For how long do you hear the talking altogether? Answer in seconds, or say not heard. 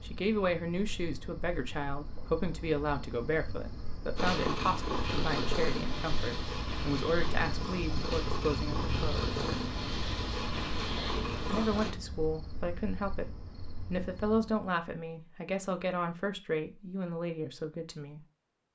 16 s.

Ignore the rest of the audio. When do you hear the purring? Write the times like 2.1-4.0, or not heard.
4.2-11.9.